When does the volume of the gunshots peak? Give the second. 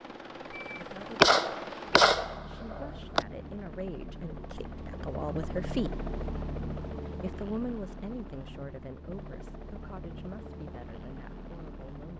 1 s.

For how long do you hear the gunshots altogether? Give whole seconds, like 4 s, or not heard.
3 s.